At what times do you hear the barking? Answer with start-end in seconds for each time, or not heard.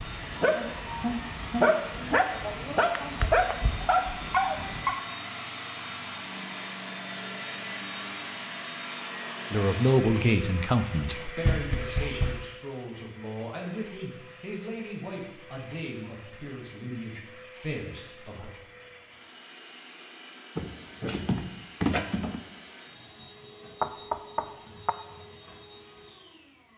0.0-5.0, 20.6-22.4.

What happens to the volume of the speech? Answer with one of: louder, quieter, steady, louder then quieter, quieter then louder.
quieter.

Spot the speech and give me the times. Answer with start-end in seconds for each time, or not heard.
9.5-18.5.